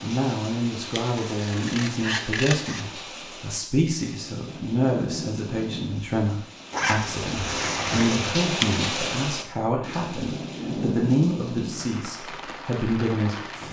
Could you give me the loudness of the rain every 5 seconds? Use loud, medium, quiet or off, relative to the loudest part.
medium, loud, loud.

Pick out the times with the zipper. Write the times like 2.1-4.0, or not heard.
6.7-8.3.